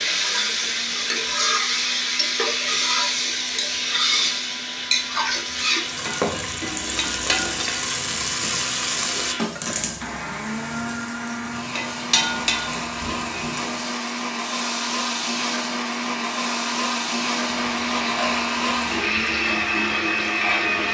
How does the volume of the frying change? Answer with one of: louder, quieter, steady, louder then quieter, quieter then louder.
quieter.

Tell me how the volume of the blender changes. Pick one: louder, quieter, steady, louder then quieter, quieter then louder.
louder.